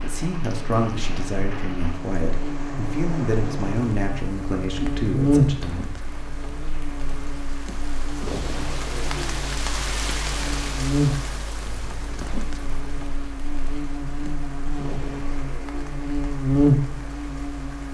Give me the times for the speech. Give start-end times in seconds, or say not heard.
0.0-5.8.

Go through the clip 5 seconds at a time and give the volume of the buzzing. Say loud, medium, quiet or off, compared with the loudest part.
medium, loud, medium, loud.